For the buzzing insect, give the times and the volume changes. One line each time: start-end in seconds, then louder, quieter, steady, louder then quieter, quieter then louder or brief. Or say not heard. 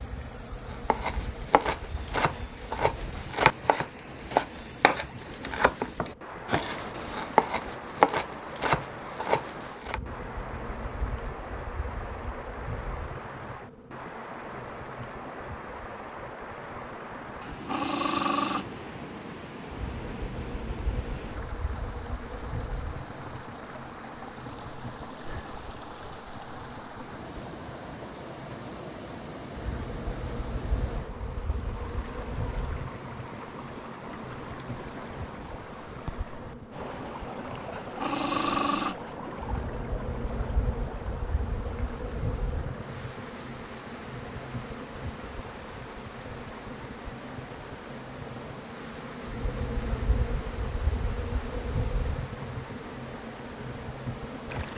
0.0-54.7 louder.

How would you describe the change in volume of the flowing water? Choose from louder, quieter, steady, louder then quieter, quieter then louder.
steady.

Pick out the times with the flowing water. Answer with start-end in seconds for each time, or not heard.
0.0-54.7.